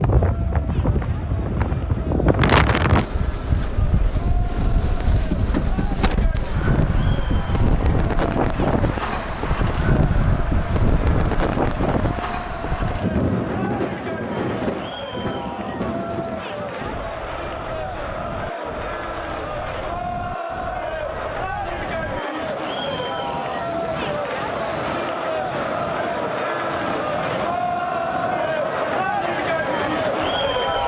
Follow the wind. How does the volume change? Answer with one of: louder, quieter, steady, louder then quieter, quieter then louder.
quieter.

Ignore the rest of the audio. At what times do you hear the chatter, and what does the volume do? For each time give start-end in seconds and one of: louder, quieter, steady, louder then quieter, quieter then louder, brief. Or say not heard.
0.0-30.8 louder.